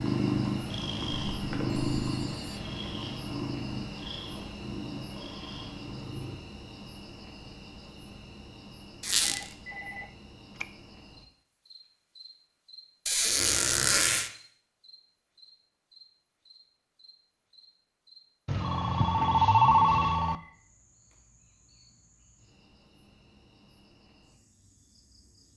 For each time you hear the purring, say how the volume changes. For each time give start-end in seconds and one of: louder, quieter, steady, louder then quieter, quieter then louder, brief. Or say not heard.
0.0-6.3 quieter.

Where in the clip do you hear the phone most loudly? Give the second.
20 s.